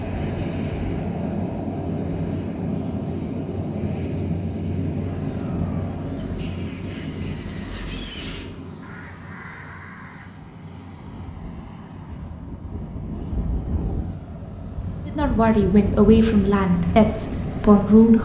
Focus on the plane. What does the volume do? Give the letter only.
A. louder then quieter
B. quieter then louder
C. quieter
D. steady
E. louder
B.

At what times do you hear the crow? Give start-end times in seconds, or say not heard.
5.0-10.3.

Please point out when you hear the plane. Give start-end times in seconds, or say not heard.
0.0-18.2.